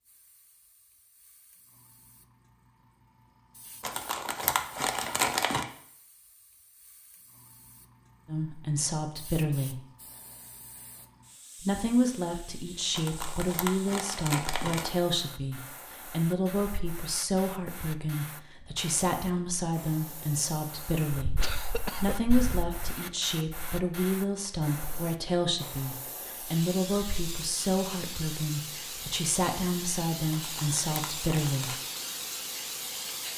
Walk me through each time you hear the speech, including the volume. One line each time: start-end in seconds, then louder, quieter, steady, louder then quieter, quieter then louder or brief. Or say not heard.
8.2-9.8 brief
11.6-21.3 steady
21.9-31.8 steady.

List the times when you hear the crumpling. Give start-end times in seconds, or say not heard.
3.8-5.7, 12.9-14.9, 30.3-31.8.